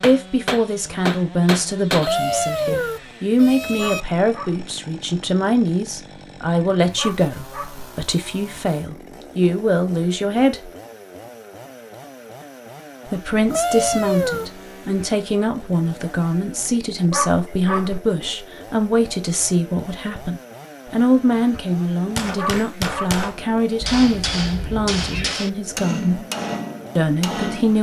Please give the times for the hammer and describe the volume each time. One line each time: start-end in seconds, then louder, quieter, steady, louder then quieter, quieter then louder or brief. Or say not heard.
0.0-2.1 brief
22.1-27.6 steady.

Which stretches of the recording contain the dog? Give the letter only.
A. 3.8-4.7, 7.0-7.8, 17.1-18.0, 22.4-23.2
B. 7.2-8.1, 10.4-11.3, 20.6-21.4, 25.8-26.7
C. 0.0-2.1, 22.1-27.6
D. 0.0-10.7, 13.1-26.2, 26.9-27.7
A.